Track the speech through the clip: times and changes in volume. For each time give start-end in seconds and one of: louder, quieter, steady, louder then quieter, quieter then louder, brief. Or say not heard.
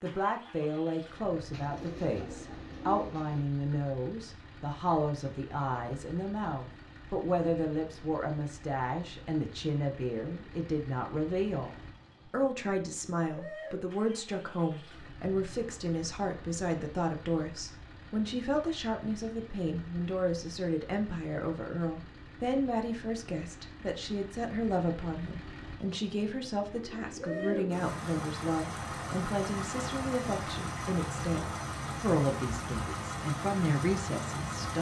0.0-34.7 steady.